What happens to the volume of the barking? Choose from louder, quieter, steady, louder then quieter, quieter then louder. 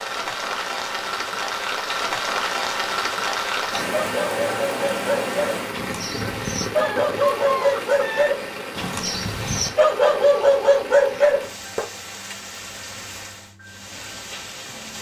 louder.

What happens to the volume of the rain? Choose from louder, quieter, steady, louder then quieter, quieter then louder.
quieter.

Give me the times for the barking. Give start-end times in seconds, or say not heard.
3.6-11.8.